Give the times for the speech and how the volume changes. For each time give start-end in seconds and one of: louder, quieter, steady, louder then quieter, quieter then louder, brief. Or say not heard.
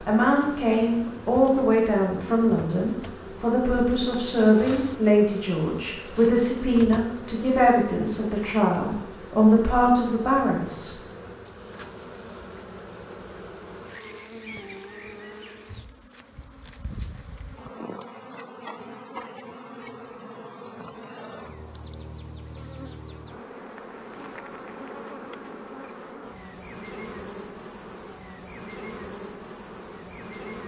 0.0-10.9 steady.